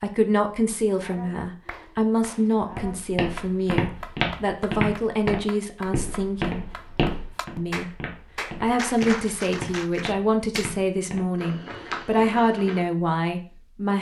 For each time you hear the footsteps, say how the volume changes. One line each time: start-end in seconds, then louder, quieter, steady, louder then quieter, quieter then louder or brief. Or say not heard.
2.7-12.8 quieter.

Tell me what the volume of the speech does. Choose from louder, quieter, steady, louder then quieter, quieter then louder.
steady.